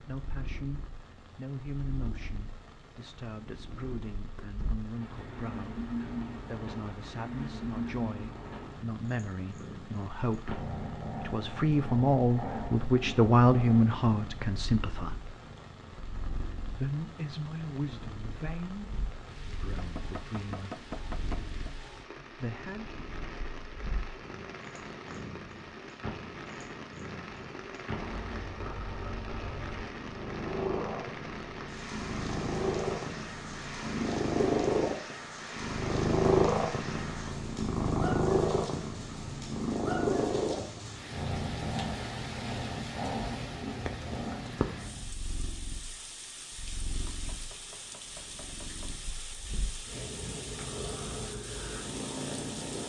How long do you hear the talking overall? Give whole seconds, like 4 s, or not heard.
20 s.